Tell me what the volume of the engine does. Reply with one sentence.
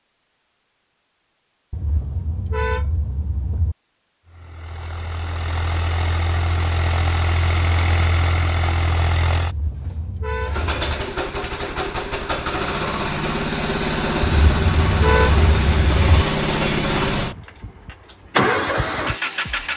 The volume of the engine goes up.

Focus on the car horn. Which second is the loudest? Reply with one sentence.
The loudest moment of the car horn is at 15 seconds.